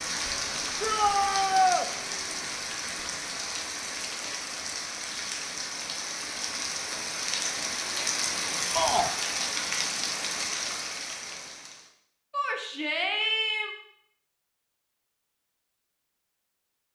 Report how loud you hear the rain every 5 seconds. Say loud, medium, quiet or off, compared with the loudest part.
loud, loud, loud, off.